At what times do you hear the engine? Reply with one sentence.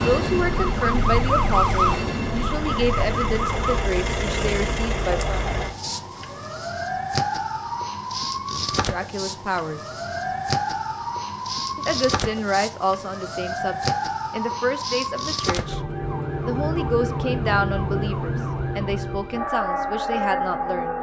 You can hear the engine from 0.1 to 5.8 s.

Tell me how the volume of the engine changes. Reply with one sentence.
The volume of the engine goes up.